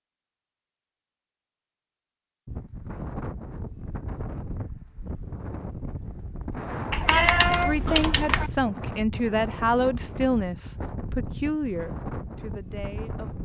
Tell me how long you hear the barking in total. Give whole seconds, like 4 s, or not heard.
not heard.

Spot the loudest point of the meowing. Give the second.
7 s.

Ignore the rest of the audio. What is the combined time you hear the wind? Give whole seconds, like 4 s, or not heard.
11 s.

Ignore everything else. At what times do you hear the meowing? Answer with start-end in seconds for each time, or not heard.
6.9-8.5.